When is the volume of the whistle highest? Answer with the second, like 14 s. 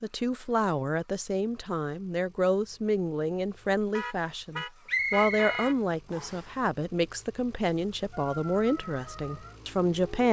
5 s.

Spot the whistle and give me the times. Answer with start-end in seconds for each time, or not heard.
4.8-6.5.